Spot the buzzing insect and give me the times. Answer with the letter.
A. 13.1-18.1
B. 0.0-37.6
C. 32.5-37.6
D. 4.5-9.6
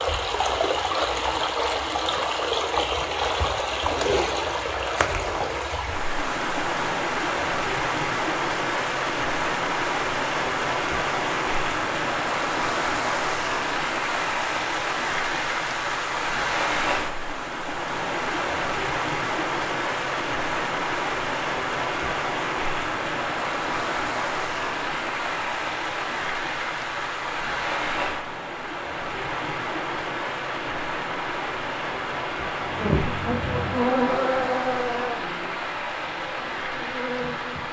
C.